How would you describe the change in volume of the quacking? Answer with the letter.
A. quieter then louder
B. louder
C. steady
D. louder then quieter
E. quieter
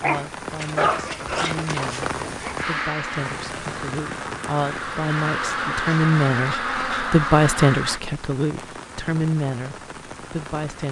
B.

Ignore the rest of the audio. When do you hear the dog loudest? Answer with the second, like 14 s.
1 s.